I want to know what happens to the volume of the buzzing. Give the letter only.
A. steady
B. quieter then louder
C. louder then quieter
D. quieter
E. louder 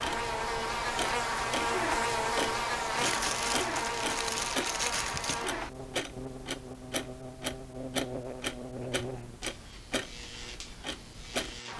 D.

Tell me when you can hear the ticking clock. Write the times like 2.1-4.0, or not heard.
0.0-11.7.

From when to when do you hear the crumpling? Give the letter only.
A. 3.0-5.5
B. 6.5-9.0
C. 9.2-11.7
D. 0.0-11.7
A.